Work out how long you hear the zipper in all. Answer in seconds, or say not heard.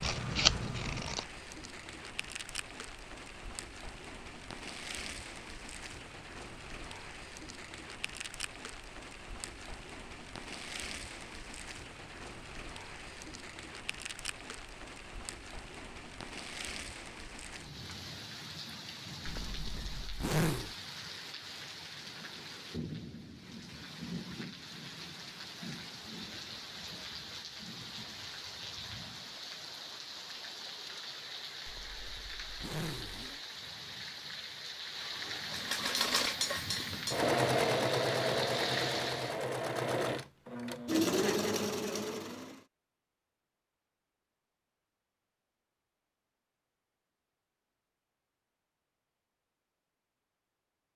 3 s.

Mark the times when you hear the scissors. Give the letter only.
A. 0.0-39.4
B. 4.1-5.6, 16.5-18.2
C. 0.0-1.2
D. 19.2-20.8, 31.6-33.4
C.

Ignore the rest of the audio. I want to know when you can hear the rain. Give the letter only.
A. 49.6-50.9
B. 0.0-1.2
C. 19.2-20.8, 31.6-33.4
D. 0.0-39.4
D.